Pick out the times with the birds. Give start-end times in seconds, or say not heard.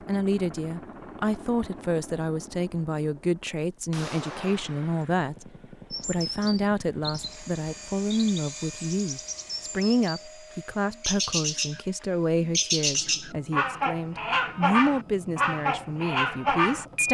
5.9-10.3, 10.9-11.8, 12.4-17.0.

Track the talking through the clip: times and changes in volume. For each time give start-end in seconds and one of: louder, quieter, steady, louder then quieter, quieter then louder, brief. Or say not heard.
0.1-17.0 steady.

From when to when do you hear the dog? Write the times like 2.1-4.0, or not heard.
not heard.